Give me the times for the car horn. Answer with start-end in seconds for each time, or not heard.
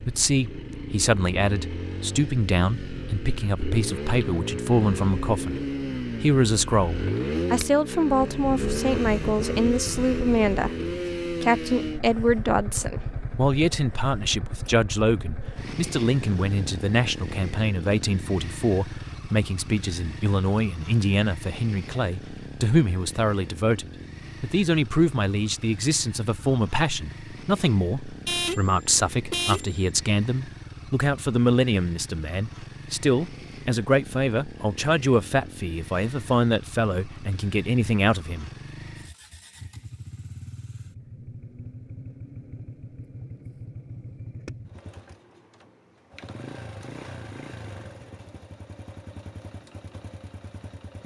28.2-29.8.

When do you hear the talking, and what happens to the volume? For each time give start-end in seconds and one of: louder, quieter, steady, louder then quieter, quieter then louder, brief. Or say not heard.
0.0-5.6 steady
6.2-38.5 steady.